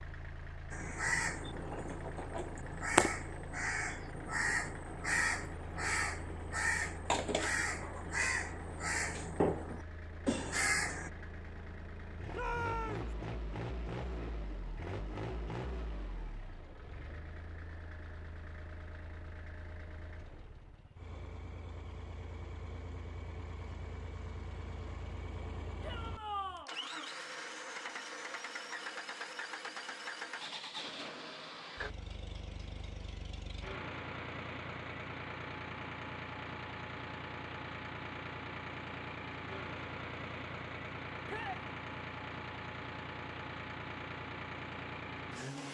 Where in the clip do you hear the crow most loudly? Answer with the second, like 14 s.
3 s.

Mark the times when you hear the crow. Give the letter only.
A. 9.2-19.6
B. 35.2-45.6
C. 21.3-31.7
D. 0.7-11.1
D.